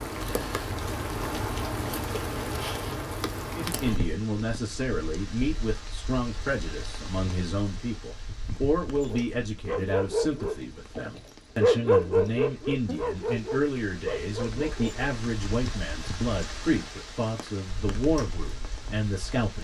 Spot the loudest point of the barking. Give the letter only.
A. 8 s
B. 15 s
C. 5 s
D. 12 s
D.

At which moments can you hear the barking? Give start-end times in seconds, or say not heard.
9.0-15.1.